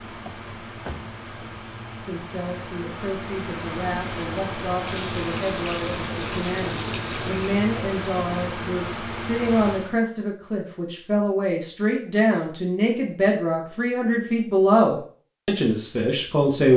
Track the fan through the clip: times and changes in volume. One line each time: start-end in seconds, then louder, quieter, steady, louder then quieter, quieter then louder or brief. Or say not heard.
0.0-10.0 louder.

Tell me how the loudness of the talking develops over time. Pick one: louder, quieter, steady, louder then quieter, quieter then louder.
louder.